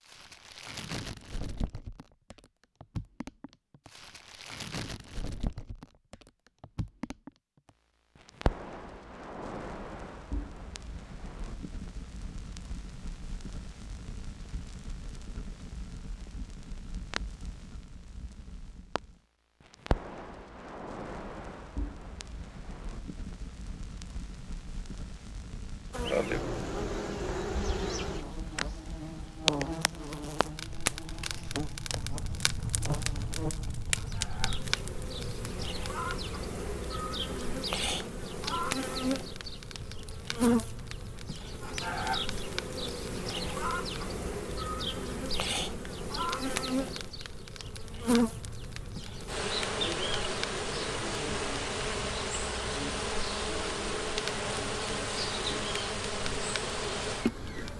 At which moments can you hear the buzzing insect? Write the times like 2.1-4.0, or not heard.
25.9-57.7.